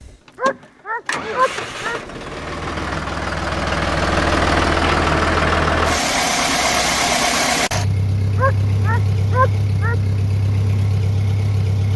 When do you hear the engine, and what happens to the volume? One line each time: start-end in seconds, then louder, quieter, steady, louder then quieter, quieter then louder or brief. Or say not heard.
0.0-11.9 louder then quieter.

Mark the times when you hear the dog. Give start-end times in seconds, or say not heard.
0.3-2.0, 8.3-9.9.